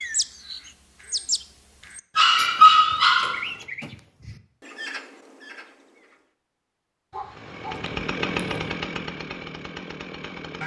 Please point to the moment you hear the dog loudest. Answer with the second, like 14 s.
3 s.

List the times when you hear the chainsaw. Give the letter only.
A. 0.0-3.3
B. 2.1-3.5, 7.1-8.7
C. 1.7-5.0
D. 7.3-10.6
D.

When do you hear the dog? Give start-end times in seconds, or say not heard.
2.1-3.5, 7.1-8.7.